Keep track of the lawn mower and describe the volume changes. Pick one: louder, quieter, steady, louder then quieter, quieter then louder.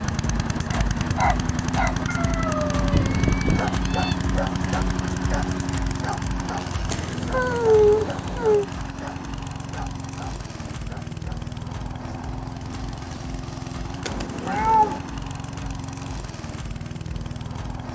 quieter.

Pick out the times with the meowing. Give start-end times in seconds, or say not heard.
2.9-4.2, 6.9-8.7, 14.1-15.0.